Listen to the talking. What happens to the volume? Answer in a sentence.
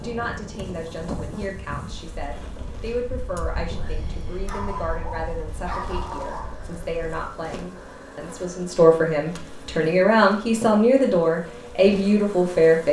The loudness of the talking goes up.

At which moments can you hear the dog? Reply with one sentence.
You can hear the dog from 4.5 to 6.6 s.